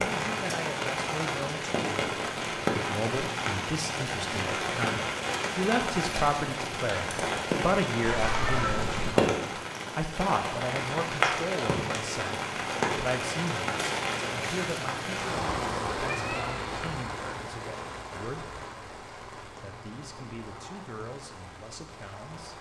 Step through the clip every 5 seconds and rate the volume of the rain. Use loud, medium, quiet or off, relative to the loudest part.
loud, loud, loud, medium, quiet.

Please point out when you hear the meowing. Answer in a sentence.
You can hear the meowing from 8.0 to 9.2 s and from 15.9 to 17.1 s.